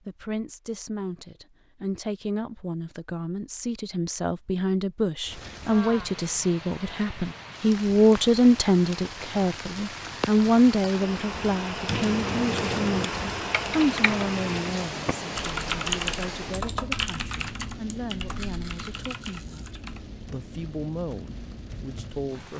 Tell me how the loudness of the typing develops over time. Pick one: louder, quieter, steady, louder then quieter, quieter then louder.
quieter.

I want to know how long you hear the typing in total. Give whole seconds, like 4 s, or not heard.
10 s.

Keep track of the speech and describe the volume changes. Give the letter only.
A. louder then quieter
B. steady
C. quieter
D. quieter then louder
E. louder
A.